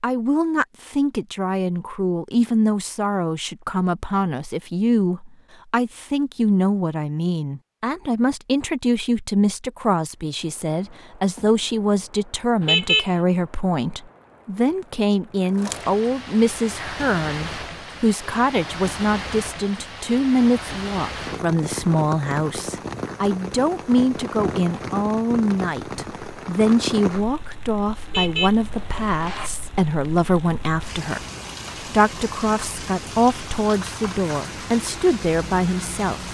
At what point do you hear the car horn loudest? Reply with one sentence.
The loudest moment of the car horn is at 13 seconds.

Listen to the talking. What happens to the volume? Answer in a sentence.
The volume of the talking stays about the same.